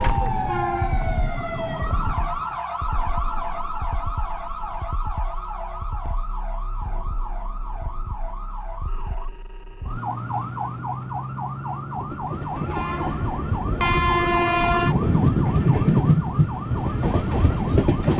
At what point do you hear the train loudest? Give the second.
16 s.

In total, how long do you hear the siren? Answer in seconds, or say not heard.
18 s.